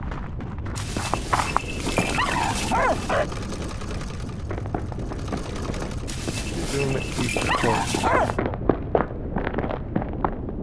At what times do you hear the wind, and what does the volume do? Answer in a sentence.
You can hear the wind from 0.0 to 10.5 s, at a steady volume.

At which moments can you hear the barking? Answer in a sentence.
The barking can be heard from 0.8 to 3.2 s and from 6.0 to 8.3 s.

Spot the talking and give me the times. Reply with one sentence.
You can hear the talking from 6.5 to 8.7 s.